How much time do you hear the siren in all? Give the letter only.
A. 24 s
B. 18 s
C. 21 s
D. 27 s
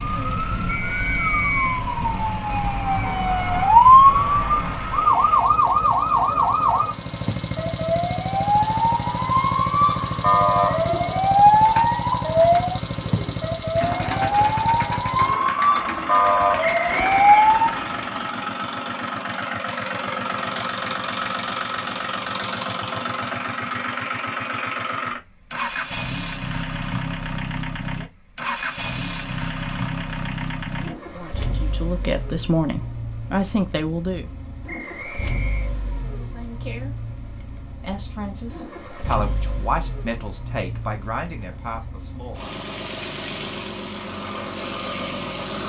B.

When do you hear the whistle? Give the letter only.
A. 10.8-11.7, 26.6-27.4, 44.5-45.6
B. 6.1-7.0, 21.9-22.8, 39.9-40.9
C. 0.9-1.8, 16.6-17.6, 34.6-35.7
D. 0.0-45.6
C.